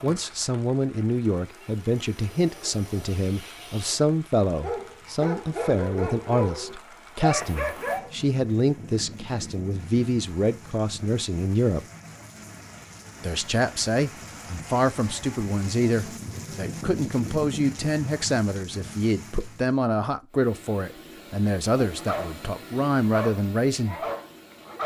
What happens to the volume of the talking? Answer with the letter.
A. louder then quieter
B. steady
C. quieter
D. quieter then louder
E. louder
B.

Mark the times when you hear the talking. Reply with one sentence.
You can hear the talking from 0.0 to 11.8 s and from 13.2 to 24.0 s.